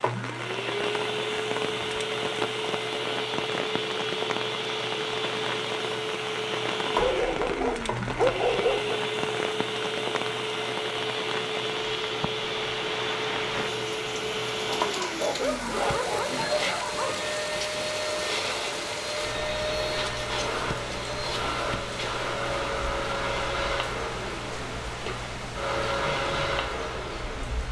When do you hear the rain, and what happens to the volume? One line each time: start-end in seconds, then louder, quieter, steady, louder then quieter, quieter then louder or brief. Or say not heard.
0.0-27.6 steady.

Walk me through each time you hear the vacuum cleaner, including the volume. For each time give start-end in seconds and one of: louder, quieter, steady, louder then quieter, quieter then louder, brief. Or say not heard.
0.0-27.6 steady.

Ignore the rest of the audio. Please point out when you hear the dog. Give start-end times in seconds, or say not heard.
7.0-8.9, 14.8-17.3.